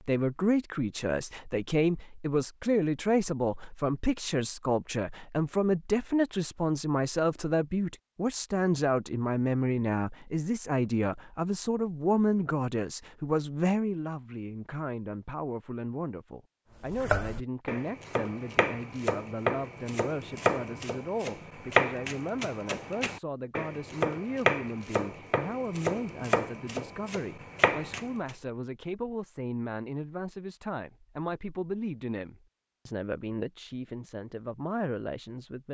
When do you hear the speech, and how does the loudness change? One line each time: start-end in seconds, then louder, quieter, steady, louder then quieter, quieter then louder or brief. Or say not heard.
0.1-35.6 quieter.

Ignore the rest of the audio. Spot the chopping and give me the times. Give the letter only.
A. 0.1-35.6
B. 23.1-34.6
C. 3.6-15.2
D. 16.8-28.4
D.